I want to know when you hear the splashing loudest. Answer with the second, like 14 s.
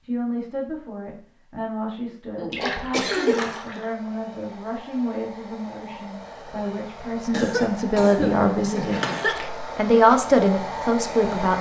3 s.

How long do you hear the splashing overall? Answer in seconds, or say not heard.
2 s.